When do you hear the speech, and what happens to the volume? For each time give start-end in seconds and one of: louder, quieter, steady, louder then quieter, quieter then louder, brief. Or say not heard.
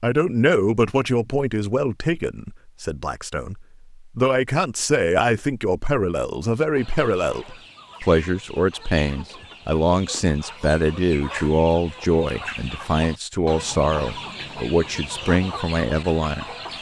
0.0-16.7 steady.